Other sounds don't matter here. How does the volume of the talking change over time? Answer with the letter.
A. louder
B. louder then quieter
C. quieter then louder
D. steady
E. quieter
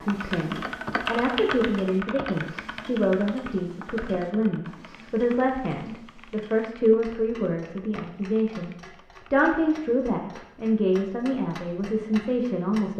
D.